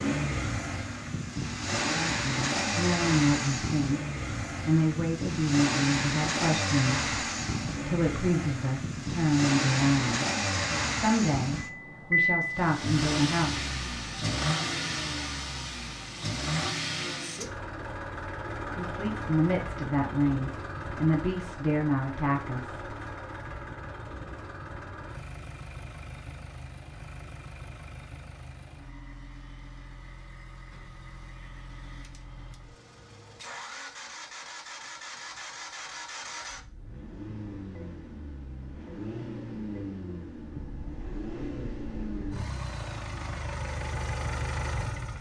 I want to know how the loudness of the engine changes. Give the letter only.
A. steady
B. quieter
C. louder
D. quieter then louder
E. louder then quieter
D.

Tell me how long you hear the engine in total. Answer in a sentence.
The engine can be heard for 45 seconds in total.